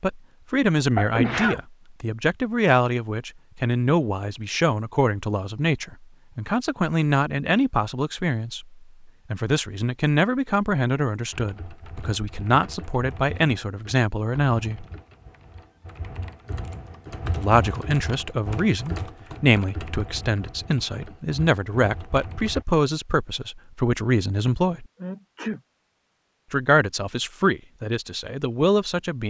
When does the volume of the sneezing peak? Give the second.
1 s.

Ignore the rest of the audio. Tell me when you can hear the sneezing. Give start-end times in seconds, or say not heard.
0.9-1.6, 25.0-25.6.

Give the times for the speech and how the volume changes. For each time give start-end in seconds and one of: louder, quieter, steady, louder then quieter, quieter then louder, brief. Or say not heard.
0.0-14.8 steady
17.4-24.9 steady
26.5-29.2 brief.